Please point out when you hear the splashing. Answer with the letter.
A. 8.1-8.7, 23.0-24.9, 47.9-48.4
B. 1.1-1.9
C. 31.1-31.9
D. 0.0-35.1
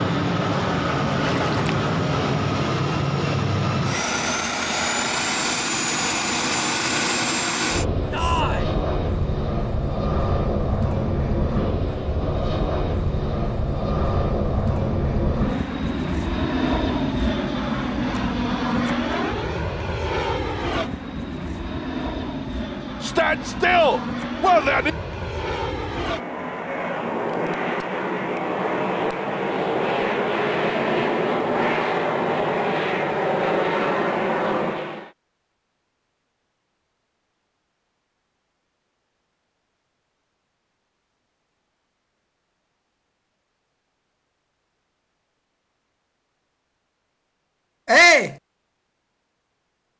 B.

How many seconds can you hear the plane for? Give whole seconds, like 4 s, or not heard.
35 s.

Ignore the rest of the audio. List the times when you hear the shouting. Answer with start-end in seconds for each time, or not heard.
8.1-8.7, 23.0-24.9, 47.9-48.4.